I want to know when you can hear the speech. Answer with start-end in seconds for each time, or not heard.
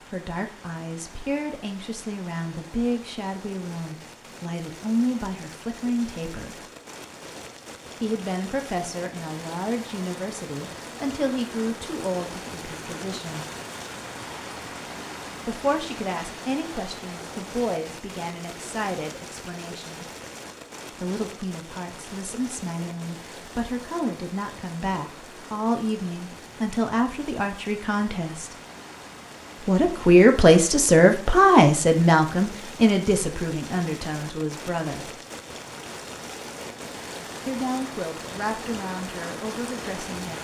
0.1-6.7, 8.0-13.5, 15.4-20.1, 21.0-28.6, 29.6-35.1, 37.5-40.3.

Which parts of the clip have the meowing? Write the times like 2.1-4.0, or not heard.
not heard.